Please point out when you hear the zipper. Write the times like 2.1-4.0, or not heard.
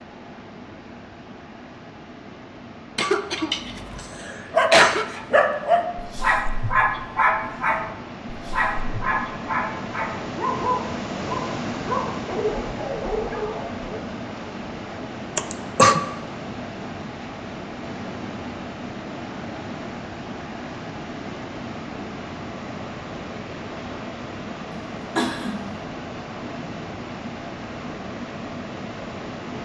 not heard.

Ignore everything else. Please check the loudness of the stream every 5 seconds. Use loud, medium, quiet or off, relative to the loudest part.
medium, medium, loud, loud, loud, loud.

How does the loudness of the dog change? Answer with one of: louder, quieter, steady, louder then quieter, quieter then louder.
quieter.